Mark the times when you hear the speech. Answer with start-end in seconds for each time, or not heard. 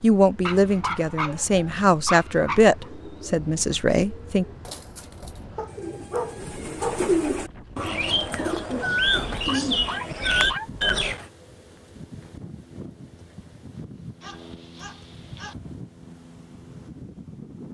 0.0-4.5.